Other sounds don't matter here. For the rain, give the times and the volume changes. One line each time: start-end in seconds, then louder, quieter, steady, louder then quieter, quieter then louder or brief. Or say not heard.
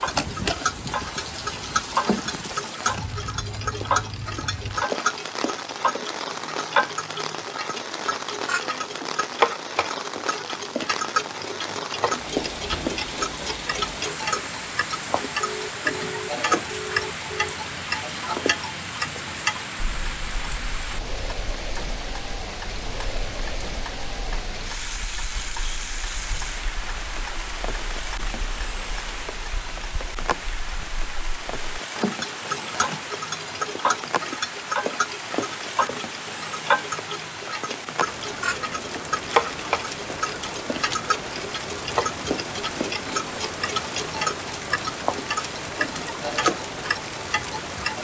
0.0-47.9 steady.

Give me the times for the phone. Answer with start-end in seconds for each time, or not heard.
15.4-17.6.